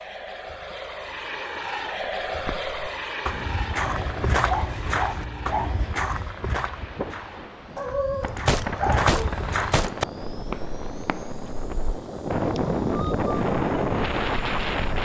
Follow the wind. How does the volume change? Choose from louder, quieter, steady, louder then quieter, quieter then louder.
louder.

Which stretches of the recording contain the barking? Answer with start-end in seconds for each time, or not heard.
3.9-5.8, 7.8-9.4.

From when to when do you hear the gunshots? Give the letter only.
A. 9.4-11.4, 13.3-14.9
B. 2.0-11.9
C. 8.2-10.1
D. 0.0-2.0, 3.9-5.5
C.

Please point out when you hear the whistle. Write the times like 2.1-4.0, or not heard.
not heard.